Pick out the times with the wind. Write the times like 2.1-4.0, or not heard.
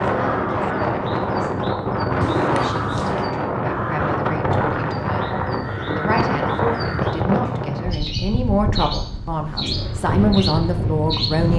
0.0-11.5.